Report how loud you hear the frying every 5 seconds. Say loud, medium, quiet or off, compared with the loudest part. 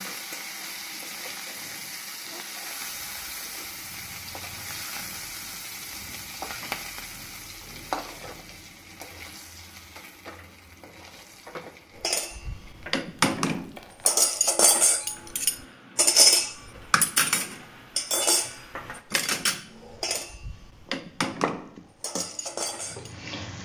loud, loud, medium, medium, loud.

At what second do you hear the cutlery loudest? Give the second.
16 s.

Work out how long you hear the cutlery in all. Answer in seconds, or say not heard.
11 s.